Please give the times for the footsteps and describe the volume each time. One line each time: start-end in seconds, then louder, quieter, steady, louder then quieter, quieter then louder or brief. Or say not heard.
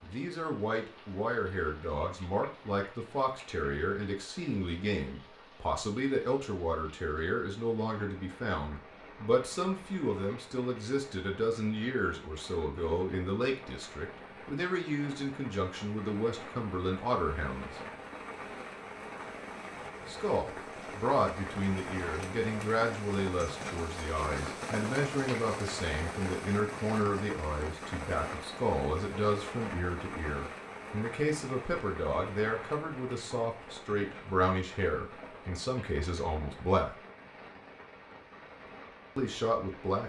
not heard.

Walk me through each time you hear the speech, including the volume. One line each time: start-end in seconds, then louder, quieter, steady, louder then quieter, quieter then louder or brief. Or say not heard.
0.0-17.8 steady
20.1-37.0 steady
39.1-40.0 brief.